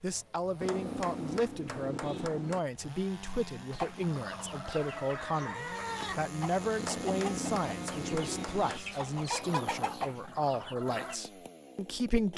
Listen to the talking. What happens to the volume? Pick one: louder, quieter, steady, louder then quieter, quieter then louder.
steady.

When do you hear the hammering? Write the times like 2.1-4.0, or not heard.
0.6-2.6, 6.8-8.8.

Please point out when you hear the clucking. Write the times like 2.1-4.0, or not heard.
3.7-11.2.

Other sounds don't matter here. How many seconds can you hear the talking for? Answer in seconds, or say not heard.
12 s.